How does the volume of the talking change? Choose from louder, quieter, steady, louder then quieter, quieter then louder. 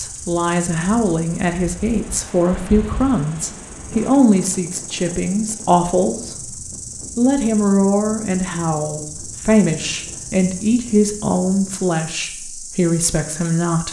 steady.